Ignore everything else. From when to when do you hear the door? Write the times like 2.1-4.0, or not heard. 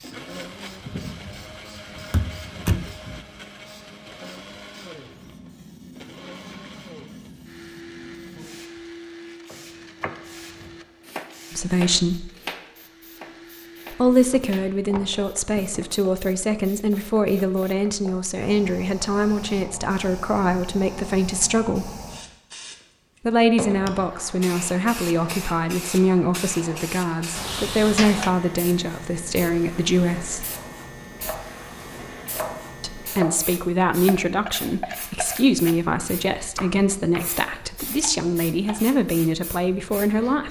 2.1-2.9, 14.3-15.8, 27.4-28.3.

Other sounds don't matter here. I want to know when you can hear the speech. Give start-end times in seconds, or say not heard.
11.5-12.3, 13.9-21.9, 23.2-30.4, 32.8-40.4.